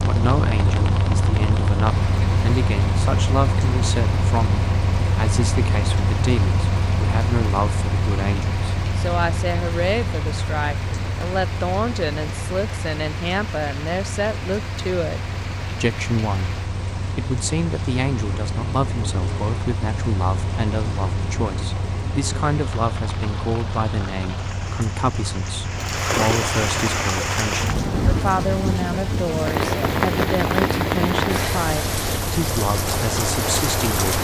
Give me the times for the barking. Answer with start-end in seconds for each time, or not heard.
not heard.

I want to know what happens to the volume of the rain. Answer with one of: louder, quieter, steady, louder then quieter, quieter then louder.
louder.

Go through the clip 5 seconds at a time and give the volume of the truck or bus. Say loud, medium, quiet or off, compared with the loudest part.
loud, loud, medium, medium, medium, medium, medium.